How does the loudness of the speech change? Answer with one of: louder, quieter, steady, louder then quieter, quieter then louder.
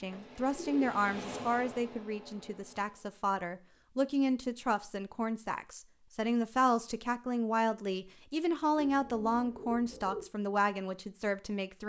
steady.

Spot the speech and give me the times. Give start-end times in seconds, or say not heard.
0.0-11.8.